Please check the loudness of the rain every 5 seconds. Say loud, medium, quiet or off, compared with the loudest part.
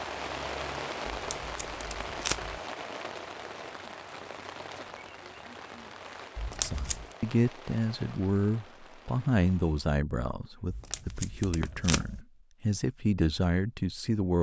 loud, medium, off.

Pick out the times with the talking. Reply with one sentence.
You can hear the talking from 6.6 to 14.3 s.